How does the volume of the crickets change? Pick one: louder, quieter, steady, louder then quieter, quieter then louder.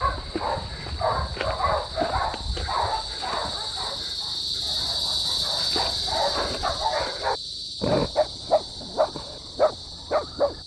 louder then quieter.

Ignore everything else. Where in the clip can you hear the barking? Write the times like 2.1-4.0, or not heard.
0.0-10.6.